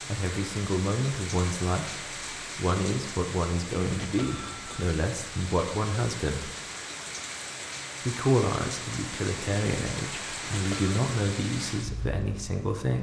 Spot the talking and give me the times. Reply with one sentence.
You can hear the talking from 0.1 to 6.5 s and from 8.1 to 12.9 s.